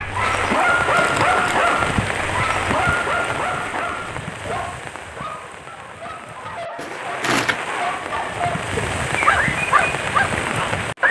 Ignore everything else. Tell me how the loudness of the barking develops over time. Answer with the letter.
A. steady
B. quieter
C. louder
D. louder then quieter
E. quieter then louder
E.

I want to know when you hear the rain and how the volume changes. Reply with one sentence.
The rain can be heard from 0.0 to 11.0 s, getting quieter then louder.